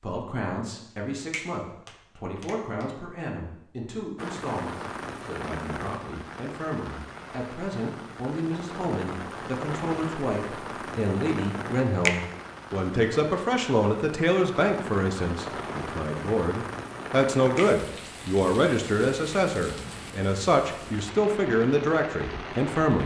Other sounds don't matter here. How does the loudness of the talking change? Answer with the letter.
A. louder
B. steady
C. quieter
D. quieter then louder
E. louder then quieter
A.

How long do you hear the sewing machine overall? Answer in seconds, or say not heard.
not heard.